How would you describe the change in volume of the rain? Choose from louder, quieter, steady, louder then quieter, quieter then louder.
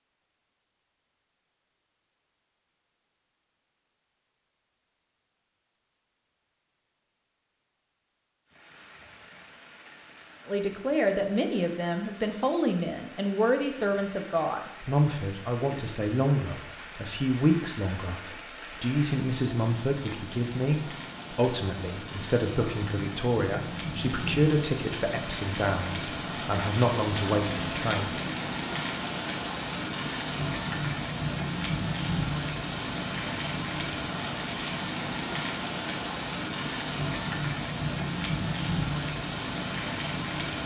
louder.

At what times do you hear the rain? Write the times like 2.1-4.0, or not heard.
8.4-40.6.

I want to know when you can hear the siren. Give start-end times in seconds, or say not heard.
not heard.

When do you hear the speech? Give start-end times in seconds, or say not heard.
10.4-28.1.